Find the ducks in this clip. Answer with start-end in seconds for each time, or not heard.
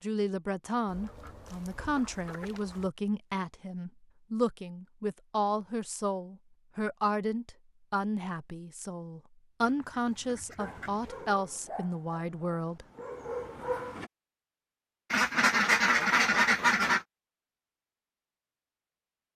0.8-2.9, 9.6-11.3, 15.1-17.1.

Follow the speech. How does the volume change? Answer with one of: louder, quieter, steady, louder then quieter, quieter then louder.
steady.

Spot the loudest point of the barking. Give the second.
14 s.